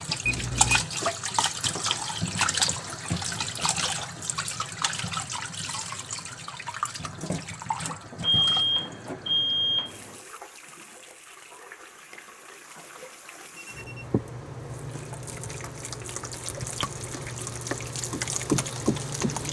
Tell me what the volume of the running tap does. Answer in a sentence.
The volume of the running tap goes down, then up.